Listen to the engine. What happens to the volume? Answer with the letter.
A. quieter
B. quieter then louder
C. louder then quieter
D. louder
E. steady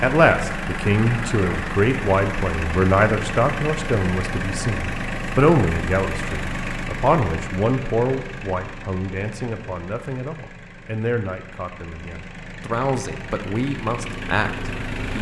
B.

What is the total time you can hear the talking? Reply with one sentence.
The talking can be heard for 15 seconds in total.